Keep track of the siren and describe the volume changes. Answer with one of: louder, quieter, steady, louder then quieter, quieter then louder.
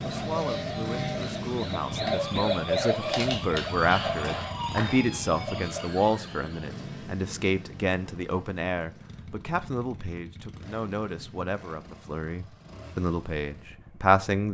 louder then quieter.